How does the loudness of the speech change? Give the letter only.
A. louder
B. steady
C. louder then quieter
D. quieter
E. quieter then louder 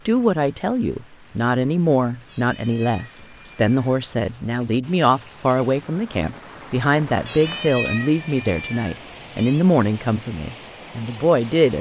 B.